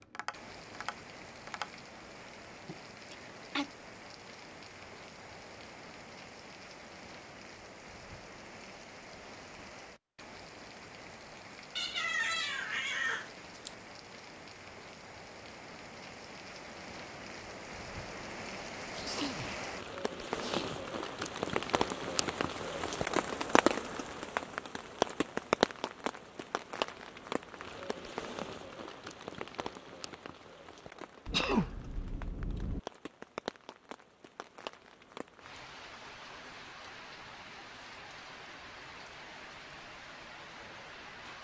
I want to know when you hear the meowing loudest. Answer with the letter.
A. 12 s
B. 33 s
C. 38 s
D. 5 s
A.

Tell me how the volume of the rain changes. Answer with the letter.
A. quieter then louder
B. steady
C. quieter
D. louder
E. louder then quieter
E.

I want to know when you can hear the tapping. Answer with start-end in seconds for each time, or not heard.
0.0-1.9.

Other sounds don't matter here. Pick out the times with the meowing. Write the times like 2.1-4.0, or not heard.
11.8-13.8.